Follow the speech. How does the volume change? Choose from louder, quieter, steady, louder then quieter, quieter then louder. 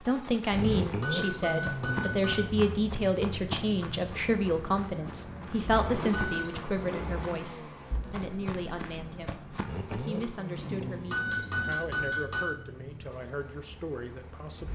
quieter.